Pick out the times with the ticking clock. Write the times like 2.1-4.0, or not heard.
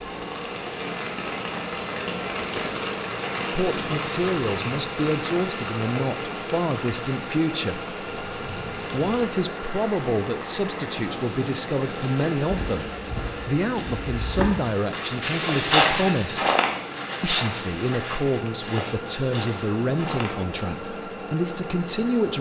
not heard.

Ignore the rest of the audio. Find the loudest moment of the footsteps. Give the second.
16 s.